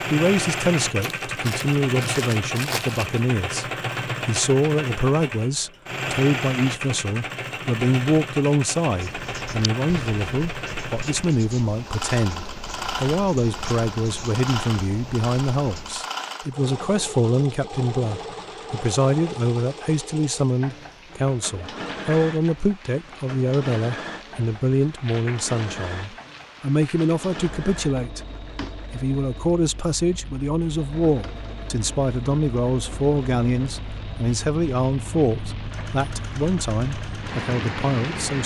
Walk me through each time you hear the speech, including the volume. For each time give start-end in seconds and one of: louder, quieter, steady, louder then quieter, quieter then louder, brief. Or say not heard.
0.1-28.2 steady
28.9-38.4 steady.